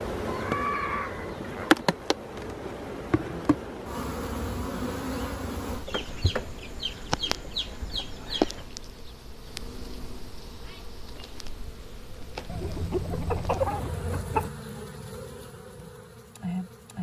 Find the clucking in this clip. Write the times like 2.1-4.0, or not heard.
0.2-1.9, 5.8-8.7, 12.4-14.5.